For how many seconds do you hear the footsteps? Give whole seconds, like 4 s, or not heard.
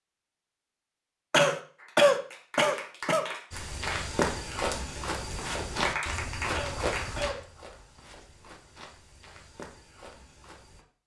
7 s.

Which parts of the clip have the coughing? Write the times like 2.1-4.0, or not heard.
1.3-3.2, 6.5-7.3.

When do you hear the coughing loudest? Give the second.
2 s.